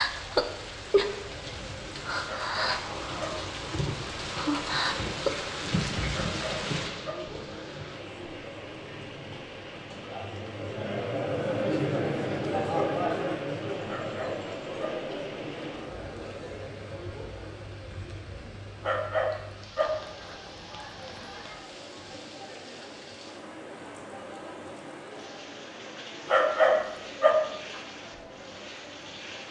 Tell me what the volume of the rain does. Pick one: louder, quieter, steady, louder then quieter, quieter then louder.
quieter.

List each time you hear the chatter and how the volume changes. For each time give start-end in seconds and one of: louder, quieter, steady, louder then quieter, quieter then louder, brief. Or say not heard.
0.0-29.4 louder then quieter.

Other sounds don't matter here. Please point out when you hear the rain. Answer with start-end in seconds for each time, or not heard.
0.0-29.4.